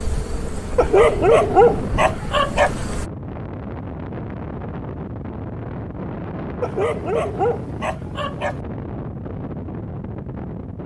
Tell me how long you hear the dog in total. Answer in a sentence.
The dog can be heard for 4 seconds in total.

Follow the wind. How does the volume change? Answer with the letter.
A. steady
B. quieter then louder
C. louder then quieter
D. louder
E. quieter
A.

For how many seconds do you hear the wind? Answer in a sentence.
The wind can be heard for 11 seconds in total.